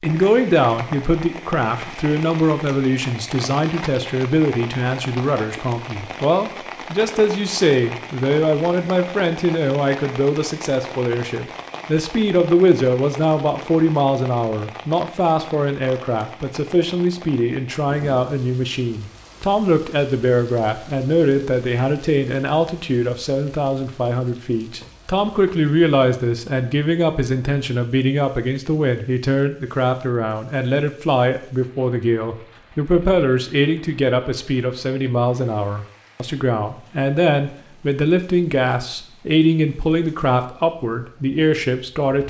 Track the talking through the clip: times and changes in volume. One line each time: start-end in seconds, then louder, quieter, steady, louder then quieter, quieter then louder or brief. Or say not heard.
0.0-42.2 steady.